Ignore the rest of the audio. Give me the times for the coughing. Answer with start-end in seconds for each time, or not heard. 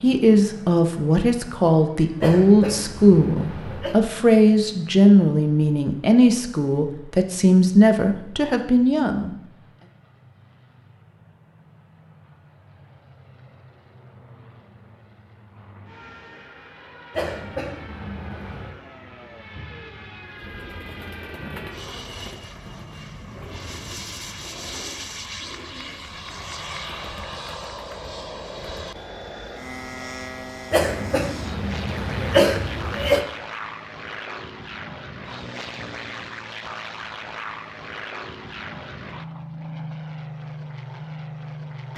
2.2-4.0, 17.1-18.8, 30.7-33.2.